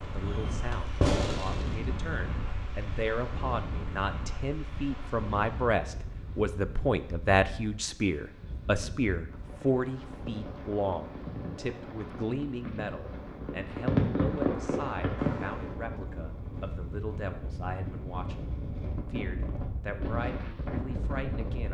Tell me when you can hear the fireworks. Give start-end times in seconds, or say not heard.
0.0-1.9, 9.2-15.7.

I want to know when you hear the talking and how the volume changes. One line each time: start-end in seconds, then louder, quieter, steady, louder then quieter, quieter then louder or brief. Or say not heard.
0.0-18.4 louder then quieter
19.1-21.6 brief.